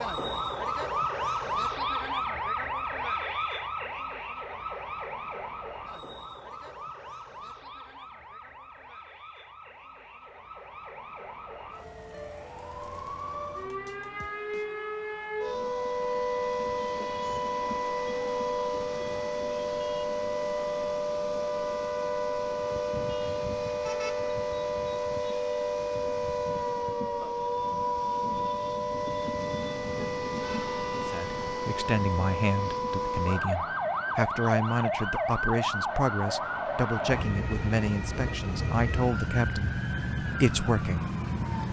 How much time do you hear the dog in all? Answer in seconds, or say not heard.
not heard.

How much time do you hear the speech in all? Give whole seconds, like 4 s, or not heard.
10 s.